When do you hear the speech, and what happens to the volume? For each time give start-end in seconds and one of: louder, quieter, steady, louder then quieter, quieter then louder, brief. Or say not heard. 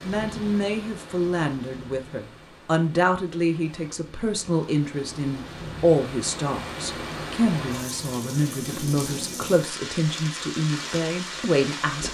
0.0-12.0 steady.